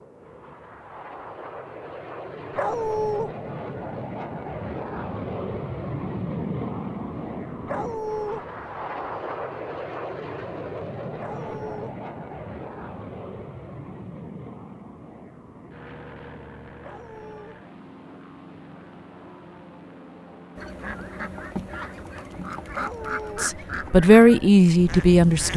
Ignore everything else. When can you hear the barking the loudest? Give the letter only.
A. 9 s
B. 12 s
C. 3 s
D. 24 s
C.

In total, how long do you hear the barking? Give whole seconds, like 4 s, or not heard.
4 s.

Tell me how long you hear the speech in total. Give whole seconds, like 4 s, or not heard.
2 s.